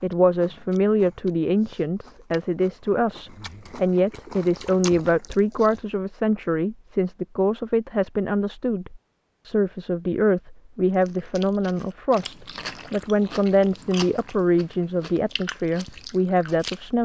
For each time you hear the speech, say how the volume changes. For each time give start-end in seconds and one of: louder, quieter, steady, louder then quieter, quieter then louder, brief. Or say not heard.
0.0-17.0 steady.